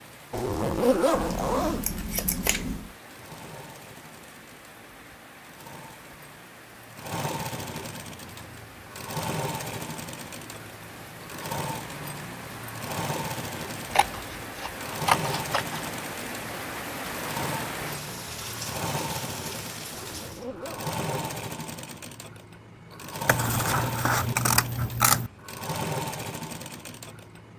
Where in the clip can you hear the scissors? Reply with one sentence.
You can hear the scissors from 1.1 to 2.9 s, from 13.9 to 15.9 s and from 23.2 to 25.3 s.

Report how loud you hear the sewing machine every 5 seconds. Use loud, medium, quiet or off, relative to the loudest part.
quiet, loud, loud, loud, loud, loud.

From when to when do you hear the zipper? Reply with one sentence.
The zipper can be heard from 0.3 to 1.9 s and from 19.9 to 21.4 s.